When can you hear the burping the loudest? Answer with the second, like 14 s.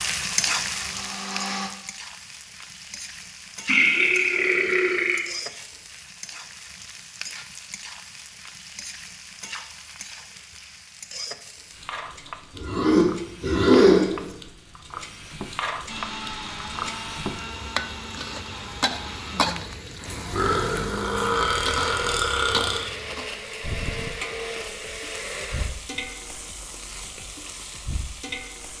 14 s.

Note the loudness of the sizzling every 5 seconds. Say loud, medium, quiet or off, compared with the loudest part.
loud, medium, medium, loud, loud, medium.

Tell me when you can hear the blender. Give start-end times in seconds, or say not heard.
0.0-1.7, 15.8-25.7.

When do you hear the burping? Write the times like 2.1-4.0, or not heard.
3.6-5.6, 12.6-14.3, 20.3-22.9.